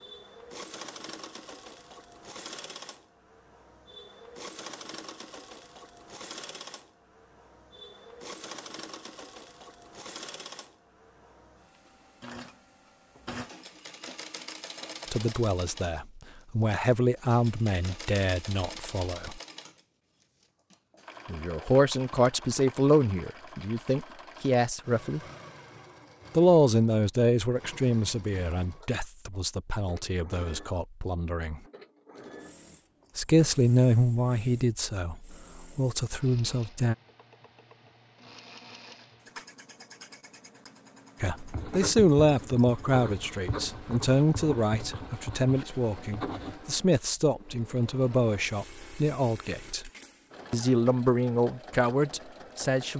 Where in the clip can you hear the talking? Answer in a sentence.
The talking can be heard from 15.1 to 19.4 s, from 21.2 to 25.2 s, from 26.3 to 31.6 s, from 33.1 to 37.0 s, from 41.2 to 49.9 s and from 50.5 to 52.9 s.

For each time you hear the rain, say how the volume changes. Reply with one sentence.
You can't hear the rain here.